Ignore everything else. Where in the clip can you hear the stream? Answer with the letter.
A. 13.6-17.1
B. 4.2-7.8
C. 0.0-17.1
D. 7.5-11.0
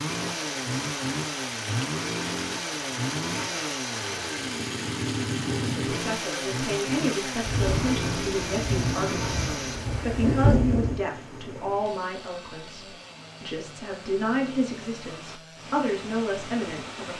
C.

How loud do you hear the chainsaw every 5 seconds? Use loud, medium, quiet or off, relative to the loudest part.
loud, loud, quiet, quiet.